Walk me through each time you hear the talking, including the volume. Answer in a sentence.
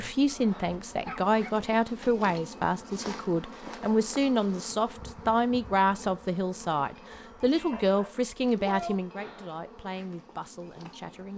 You can hear the talking from 0.0 to 11.3 s, getting quieter.